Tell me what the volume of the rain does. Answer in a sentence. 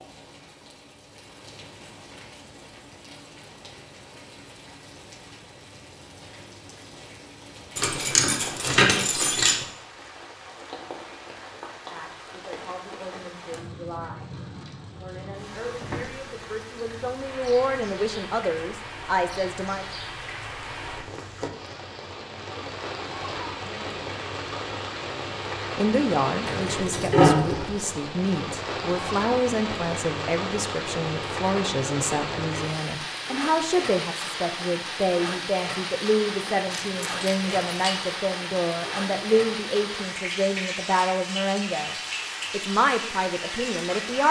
The volume of the rain goes up.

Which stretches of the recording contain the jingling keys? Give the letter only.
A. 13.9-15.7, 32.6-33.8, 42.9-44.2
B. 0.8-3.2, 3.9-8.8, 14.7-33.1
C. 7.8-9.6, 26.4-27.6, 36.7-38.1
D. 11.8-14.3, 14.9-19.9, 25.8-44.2
C.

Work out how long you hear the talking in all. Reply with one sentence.
The talking can be heard for 26 seconds in total.